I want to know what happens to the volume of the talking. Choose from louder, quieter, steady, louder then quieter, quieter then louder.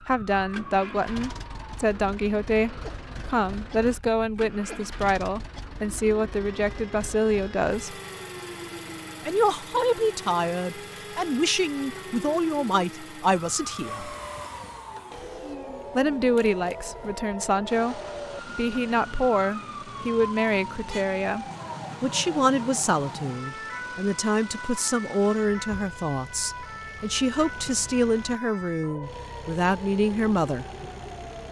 steady.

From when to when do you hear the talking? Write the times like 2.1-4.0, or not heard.
0.0-8.0, 9.2-14.2, 15.9-30.6.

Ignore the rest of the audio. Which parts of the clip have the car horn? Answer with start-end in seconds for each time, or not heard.
not heard.